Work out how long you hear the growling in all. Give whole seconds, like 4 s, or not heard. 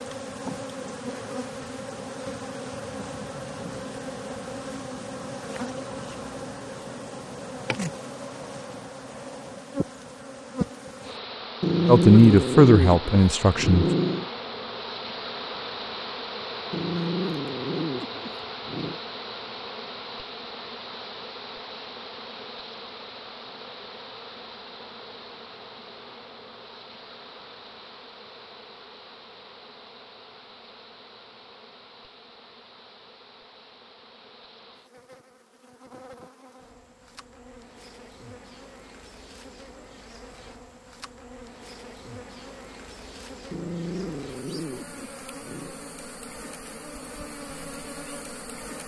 7 s.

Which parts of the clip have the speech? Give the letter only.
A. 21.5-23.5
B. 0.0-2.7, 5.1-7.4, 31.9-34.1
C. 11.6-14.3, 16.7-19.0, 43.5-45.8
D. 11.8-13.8
D.